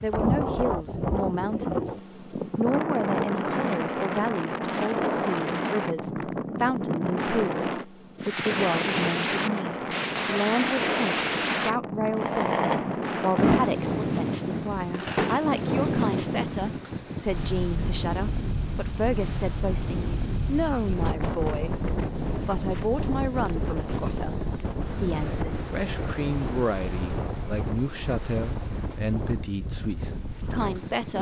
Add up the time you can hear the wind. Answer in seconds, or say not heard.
31 s.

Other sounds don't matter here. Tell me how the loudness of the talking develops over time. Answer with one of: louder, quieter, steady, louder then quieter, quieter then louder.
steady.